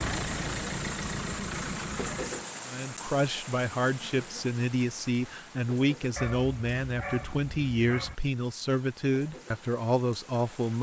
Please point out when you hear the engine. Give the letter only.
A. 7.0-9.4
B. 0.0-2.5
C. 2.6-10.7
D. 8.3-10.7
B.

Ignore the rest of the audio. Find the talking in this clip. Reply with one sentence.
You can hear the talking from 2.6 to 10.7 s.